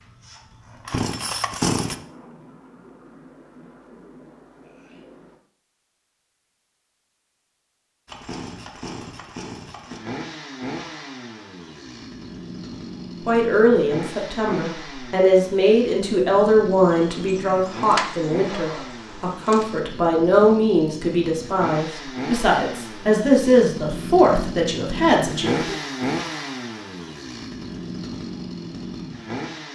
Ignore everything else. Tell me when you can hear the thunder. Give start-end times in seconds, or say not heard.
1.8-5.4.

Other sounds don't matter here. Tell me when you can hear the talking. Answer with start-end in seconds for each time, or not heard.
13.2-25.8.